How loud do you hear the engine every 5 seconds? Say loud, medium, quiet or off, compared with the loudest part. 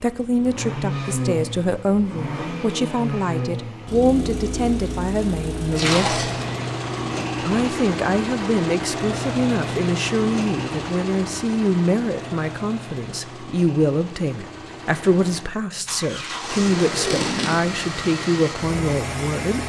loud, loud, medium, loud.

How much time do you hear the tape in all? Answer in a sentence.
You can hear the tape for 2 seconds altogether.